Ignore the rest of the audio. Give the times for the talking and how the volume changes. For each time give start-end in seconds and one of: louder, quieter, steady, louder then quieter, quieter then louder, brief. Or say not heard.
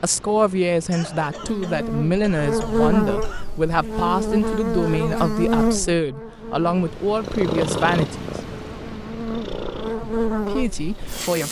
0.0-8.4 steady
10.0-11.4 brief.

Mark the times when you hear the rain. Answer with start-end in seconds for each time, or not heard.
not heard.